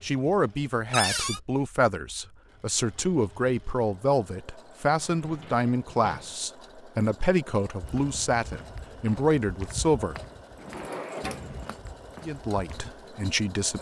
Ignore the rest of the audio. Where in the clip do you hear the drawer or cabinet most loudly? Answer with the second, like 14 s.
1 s.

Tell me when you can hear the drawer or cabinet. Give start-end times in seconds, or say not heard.
0.9-1.4, 5.0-6.3, 10.6-11.8.